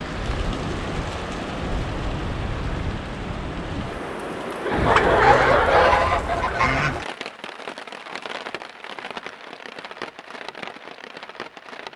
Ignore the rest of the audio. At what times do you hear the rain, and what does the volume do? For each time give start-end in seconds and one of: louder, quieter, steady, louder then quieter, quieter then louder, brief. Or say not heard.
0.0-11.9 quieter.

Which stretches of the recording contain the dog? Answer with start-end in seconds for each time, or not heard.
not heard.